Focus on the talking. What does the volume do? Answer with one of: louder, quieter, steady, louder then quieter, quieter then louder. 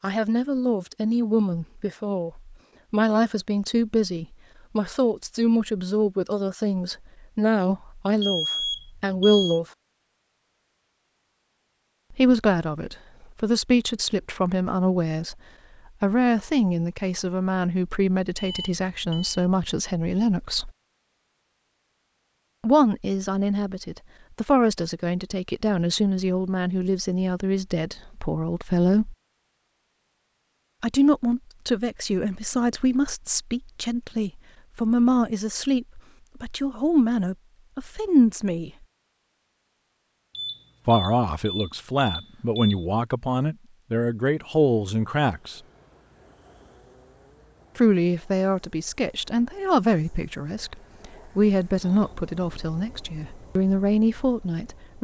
steady.